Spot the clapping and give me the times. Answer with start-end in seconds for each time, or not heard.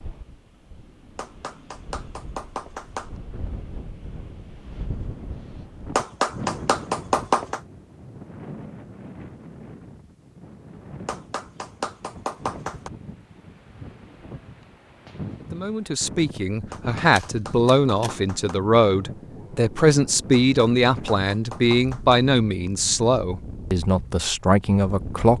1.1-3.1, 6.0-7.6, 11.1-12.9, 16.7-18.6, 20.3-22.2.